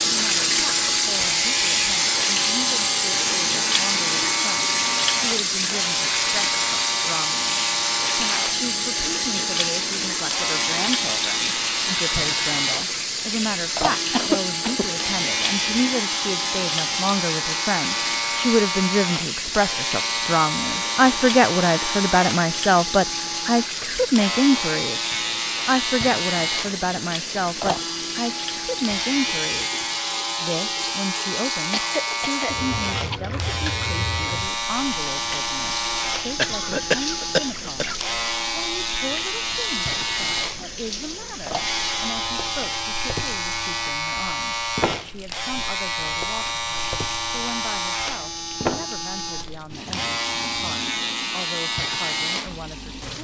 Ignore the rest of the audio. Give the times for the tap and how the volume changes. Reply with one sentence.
The tap can be heard from 0.0 to 53.1 s, getting quieter.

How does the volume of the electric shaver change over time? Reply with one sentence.
The volume of the electric shaver stays about the same.